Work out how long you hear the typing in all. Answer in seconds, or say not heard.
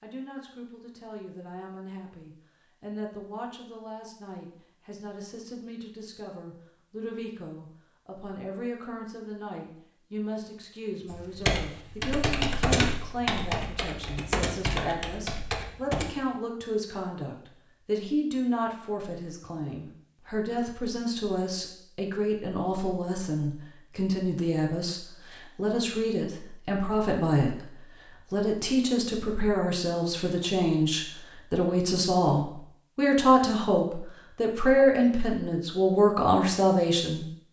5 s.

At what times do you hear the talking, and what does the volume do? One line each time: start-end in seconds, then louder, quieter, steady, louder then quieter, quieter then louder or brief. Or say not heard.
0.0-37.4 louder.